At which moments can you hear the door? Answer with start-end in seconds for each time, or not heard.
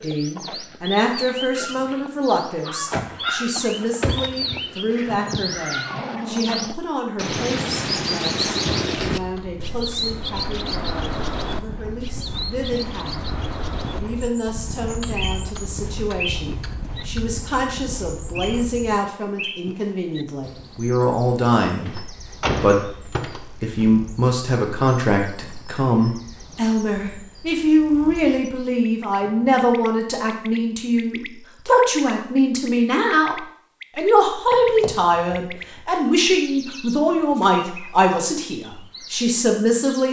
2.9-5.5, 21.9-23.9, 34.5-35.8.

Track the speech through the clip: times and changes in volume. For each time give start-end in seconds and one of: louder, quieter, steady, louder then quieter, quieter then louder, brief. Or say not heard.
0.0-13.2 quieter
13.9-40.0 louder.